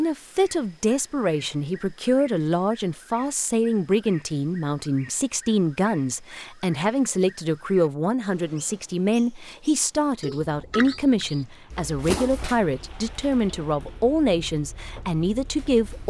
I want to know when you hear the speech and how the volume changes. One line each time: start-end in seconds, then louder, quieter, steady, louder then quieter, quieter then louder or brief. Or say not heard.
0.0-16.0 steady.